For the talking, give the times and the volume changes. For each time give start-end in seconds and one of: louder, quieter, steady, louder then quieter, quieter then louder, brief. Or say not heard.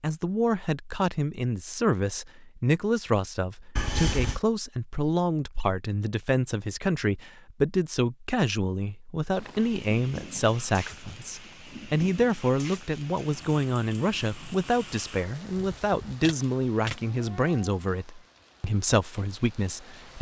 0.0-20.1 steady.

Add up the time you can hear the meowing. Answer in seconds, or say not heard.
2 s.